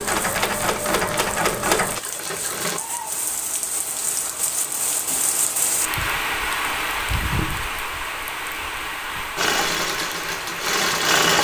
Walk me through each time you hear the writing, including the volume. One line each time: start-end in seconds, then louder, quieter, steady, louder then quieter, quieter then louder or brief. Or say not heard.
not heard.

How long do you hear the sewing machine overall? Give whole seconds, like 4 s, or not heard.
5 s.